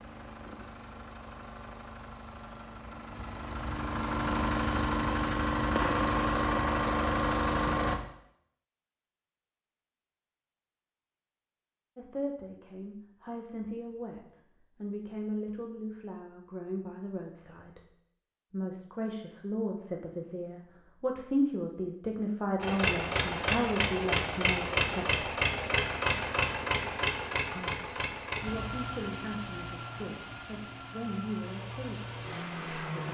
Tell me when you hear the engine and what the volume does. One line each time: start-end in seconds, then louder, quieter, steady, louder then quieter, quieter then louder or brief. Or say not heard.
0.0-8.0 louder
22.6-33.0 quieter.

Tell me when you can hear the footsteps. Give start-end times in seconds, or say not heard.
not heard.